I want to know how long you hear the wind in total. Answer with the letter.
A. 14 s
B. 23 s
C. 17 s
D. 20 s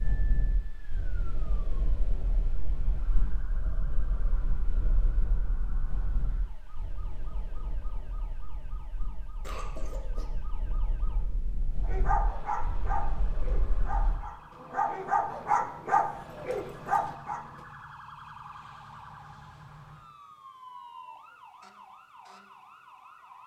A.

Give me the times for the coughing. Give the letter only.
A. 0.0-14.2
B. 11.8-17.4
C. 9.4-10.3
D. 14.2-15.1
C.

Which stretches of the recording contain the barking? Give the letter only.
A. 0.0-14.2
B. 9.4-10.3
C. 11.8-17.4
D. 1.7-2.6
C.